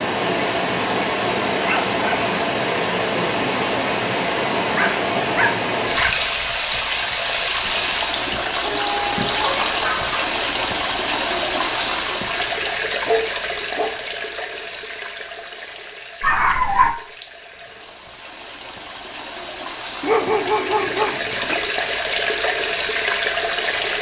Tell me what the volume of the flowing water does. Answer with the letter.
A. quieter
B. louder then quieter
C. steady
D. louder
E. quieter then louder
E.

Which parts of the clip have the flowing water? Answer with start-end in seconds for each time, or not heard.
0.0-23.9.